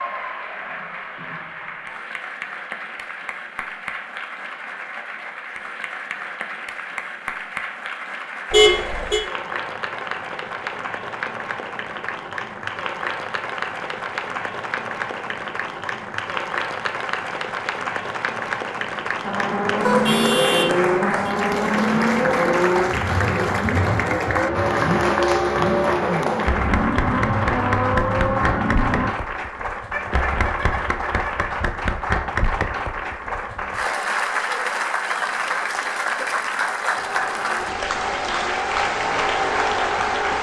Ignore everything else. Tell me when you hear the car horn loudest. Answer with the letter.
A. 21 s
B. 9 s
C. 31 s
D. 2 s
B.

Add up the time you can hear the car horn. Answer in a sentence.
You can hear the car horn for 4 seconds altogether.